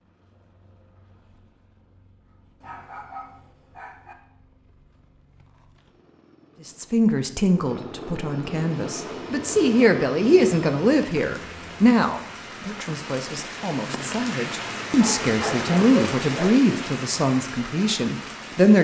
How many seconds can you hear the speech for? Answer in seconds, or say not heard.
12 s.